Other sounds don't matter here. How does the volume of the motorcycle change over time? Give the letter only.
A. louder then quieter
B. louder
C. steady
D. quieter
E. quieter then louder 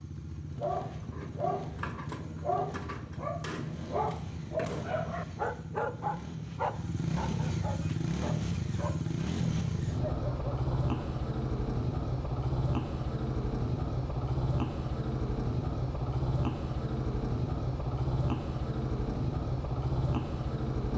B.